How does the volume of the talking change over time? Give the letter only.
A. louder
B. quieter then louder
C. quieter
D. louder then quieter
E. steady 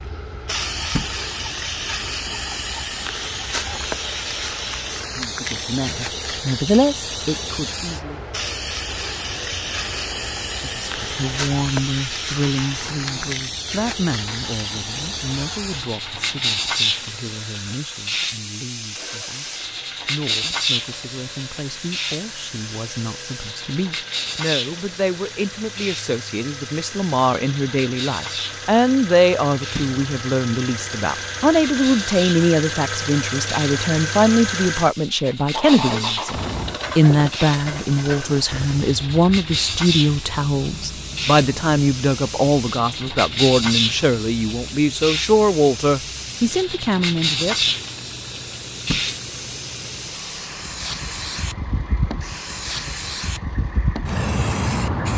B.